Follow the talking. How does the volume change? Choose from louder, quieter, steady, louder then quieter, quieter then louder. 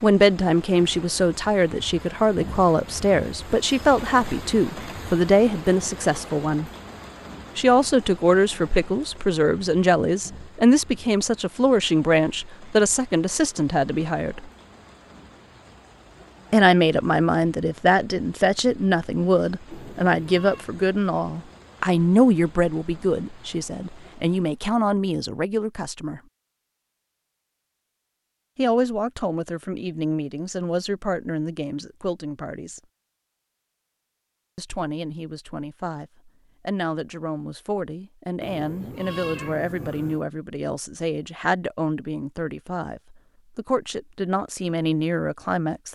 quieter.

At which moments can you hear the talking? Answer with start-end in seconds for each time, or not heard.
0.0-6.7, 7.5-14.4, 16.5-26.2, 28.6-32.8, 34.5-45.8.